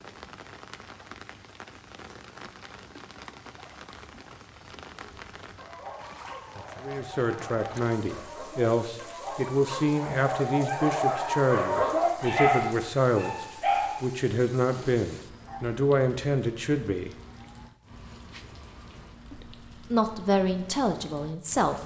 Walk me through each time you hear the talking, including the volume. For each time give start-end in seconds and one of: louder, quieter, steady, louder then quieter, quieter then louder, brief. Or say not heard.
6.8-17.1 steady
19.3-21.8 brief.